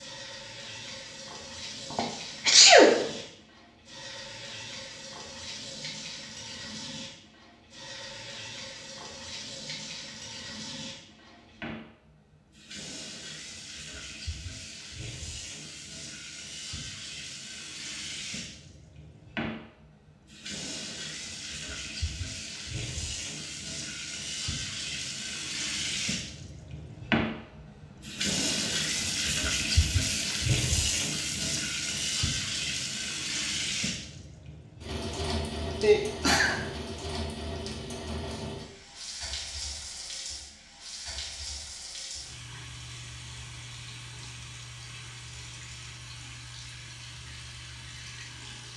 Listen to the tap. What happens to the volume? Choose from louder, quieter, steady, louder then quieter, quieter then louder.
louder then quieter.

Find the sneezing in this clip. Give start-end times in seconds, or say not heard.
1.9-3.0, 35.8-36.5.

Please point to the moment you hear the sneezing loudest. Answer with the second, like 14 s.
3 s.